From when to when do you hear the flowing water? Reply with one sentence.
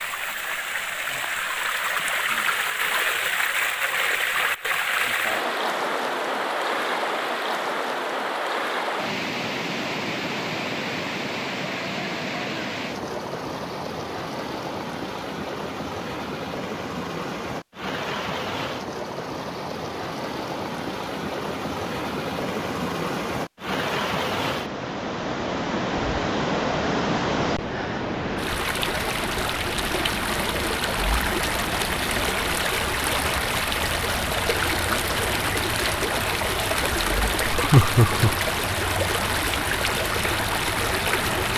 The flowing water can be heard from 0.0 to 41.5 s.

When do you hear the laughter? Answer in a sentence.
You can hear the laughter from 37.5 to 38.4 s.